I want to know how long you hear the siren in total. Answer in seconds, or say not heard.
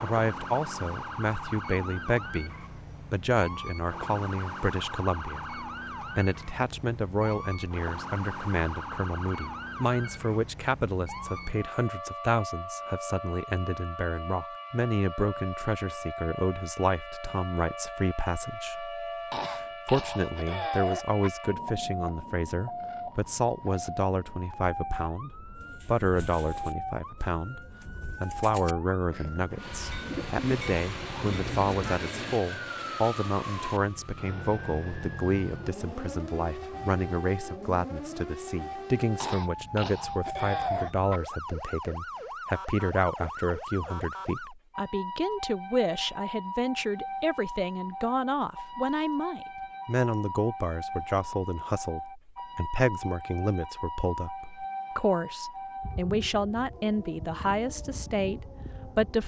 59 s.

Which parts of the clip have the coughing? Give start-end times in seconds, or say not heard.
19.3-21.3, 39.2-41.2.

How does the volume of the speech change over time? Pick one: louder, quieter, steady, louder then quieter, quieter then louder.
steady.